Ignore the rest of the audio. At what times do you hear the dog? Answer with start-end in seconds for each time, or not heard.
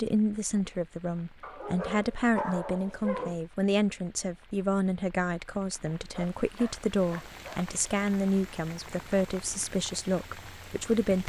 1.4-3.4, 6.1-7.7.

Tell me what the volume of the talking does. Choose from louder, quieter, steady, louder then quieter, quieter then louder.
steady.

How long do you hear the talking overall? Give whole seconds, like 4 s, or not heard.
11 s.